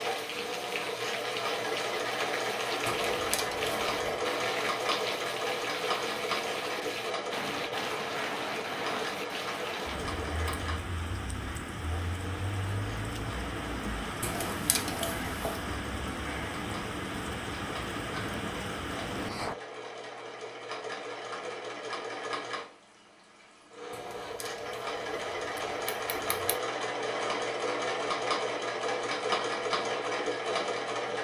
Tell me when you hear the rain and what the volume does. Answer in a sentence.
The rain can be heard from 0.0 to 19.6 s, at a steady volume.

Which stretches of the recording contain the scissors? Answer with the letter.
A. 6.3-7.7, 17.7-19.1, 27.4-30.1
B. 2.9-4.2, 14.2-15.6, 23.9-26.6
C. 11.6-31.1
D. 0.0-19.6
B.